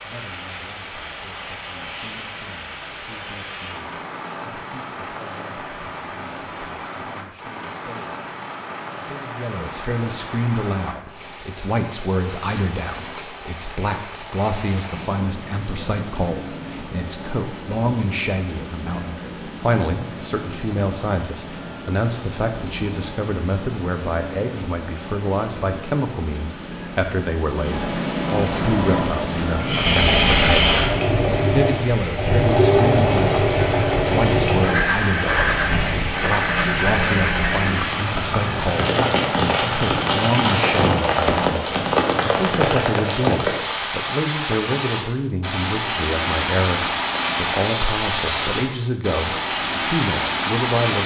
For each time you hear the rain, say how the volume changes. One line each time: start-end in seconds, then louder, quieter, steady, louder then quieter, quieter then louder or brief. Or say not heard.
0.0-51.0 louder.